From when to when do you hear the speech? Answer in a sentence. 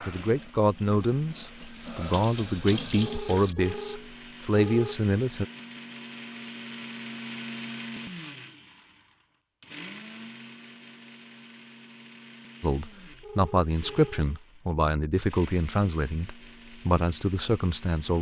You can hear the speech from 0.1 to 5.5 s and from 12.6 to 18.1 s.